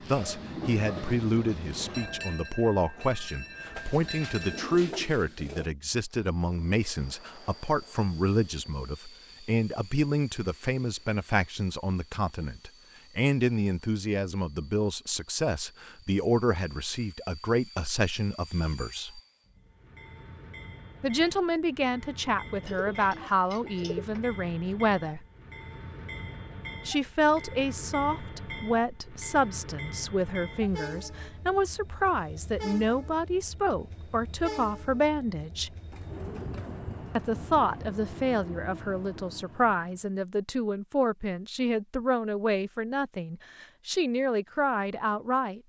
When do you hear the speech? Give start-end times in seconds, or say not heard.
0.1-19.2, 21.0-25.2, 26.9-35.7, 37.1-45.6.